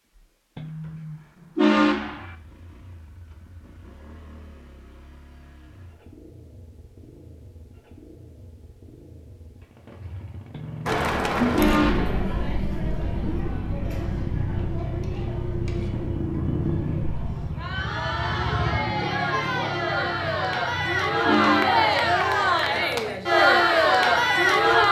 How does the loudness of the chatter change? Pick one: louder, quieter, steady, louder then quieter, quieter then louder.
quieter then louder.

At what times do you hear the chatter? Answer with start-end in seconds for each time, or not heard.
10.8-24.8.